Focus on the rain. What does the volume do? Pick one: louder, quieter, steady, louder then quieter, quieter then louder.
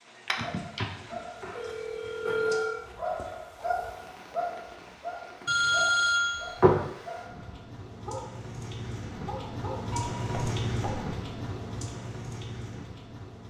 louder.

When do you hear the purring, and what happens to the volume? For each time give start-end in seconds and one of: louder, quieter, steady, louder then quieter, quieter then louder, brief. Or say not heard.
not heard.